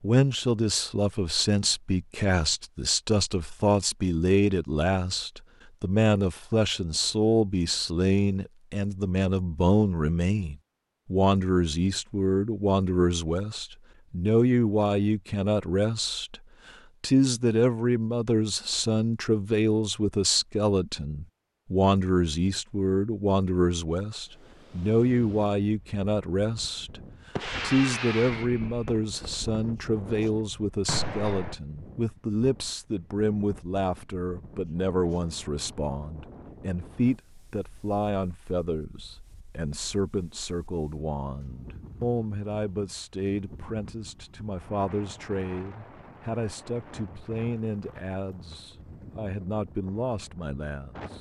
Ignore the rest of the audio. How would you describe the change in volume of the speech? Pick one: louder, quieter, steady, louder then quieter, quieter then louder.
quieter.